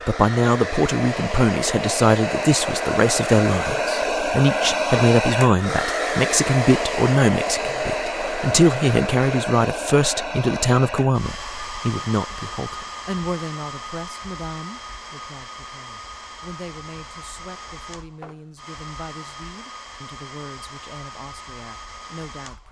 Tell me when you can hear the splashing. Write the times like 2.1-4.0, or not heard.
not heard.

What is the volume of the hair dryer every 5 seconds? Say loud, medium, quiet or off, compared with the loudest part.
loud, loud, medium, quiet, quiet.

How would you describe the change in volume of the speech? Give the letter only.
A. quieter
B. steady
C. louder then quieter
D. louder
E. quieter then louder
A.